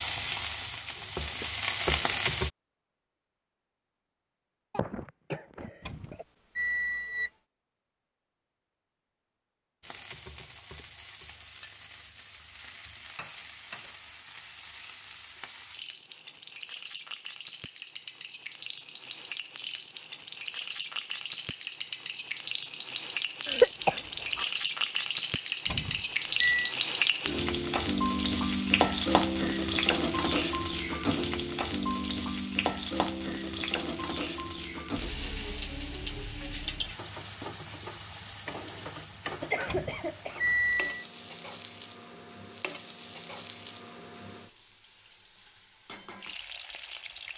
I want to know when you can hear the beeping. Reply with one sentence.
The beeping can be heard from 5.8 to 7.3 s, from 25.6 to 26.8 s and from 39.6 to 41.0 s.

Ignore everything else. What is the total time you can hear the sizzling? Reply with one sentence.
You can hear the sizzling for 40 seconds altogether.